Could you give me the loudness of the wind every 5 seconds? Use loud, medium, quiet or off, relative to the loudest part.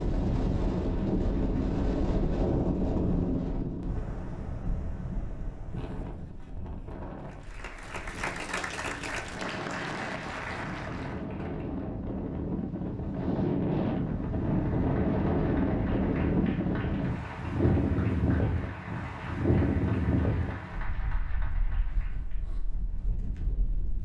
loud, quiet, loud, loud, medium.